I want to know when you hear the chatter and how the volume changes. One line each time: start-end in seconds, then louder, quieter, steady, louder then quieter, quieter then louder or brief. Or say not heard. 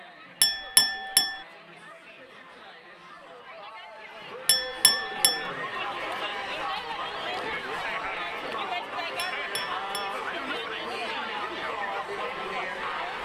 0.0-13.1 louder.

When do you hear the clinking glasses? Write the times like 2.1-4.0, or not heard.
0.4-1.4, 4.5-5.5, 9.2-10.2.